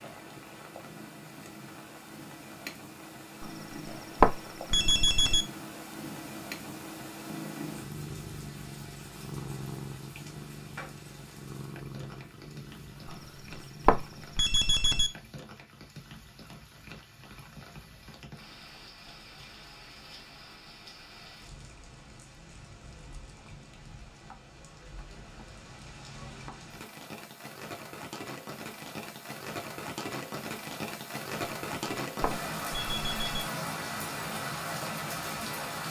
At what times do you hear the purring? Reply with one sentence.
The purring can be heard from 0.0 to 14.3 s.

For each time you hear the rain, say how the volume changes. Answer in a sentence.
You can hear the rain from 0.0 to 35.8 s, getting louder.